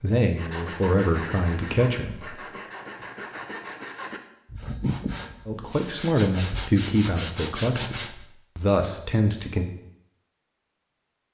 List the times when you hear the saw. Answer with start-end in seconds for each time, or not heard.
0.3-8.2.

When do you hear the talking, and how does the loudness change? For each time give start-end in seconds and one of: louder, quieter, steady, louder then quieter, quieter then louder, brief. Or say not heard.
0.0-2.4 brief
5.5-9.7 quieter then louder.